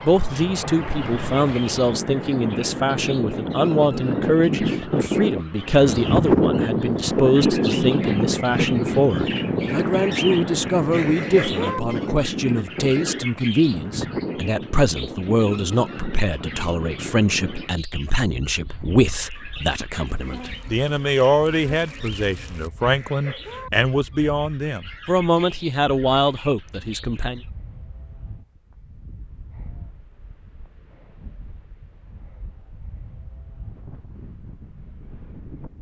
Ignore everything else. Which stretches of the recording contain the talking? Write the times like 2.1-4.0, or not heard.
0.0-27.4.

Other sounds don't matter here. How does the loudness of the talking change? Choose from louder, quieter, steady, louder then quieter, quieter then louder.
steady.